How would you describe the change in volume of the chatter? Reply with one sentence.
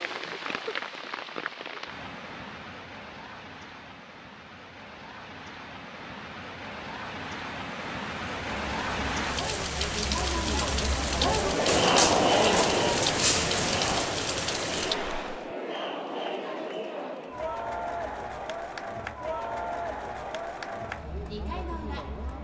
The loudness of the chatter goes down.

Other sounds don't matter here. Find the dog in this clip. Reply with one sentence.
The dog can be heard from 11.7 to 14.1 s.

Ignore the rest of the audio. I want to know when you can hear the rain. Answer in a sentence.
The rain can be heard from 0.0 to 15.6 s.